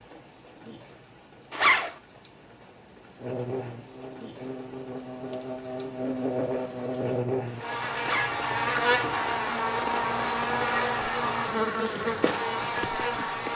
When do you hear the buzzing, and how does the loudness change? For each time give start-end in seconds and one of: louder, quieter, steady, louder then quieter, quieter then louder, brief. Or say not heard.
3.2-13.5 louder.